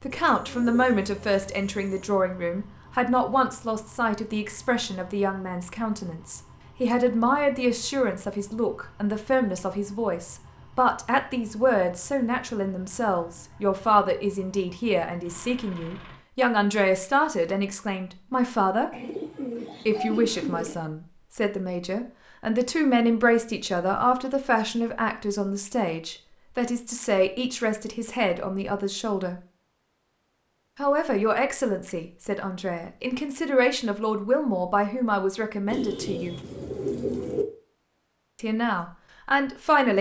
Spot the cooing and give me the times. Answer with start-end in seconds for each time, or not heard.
0.1-2.1, 18.9-20.8, 35.6-37.5.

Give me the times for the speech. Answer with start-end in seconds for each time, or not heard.
0.0-18.9, 19.9-29.4, 30.8-36.4, 38.4-39.9.